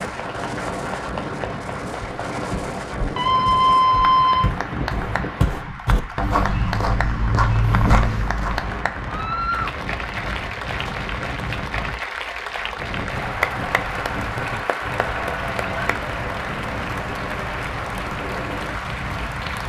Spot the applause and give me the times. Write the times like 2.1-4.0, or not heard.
0.0-19.6.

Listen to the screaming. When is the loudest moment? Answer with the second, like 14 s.
4 s.